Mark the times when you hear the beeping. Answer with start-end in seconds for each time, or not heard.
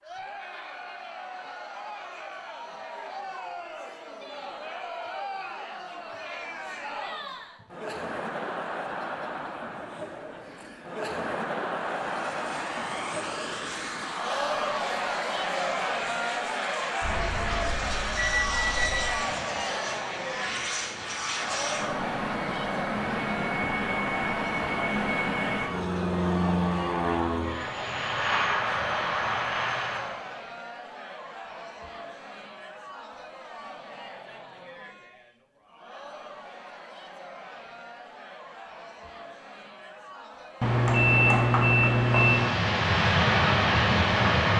17.0-19.2, 40.6-42.5.